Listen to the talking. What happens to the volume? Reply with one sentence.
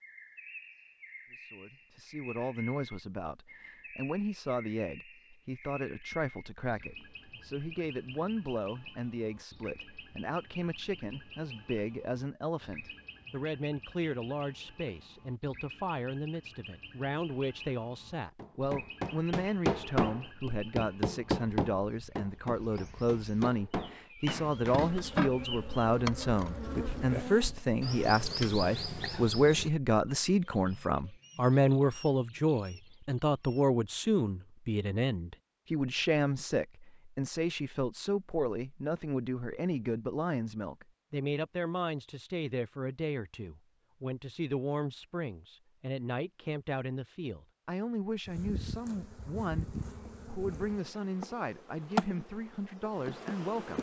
The loudness of the talking goes up, then down.